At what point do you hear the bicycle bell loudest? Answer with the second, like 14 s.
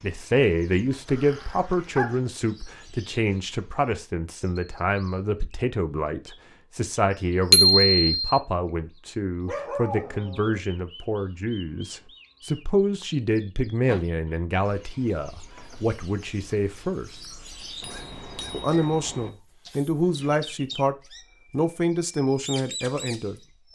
8 s.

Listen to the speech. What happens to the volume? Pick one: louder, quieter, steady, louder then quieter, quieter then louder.
steady.